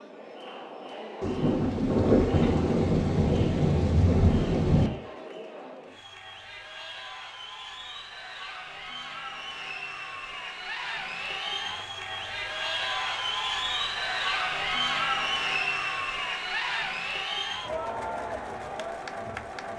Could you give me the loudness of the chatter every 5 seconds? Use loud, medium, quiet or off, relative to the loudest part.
medium, medium, loud, loud.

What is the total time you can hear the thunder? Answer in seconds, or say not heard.
4 s.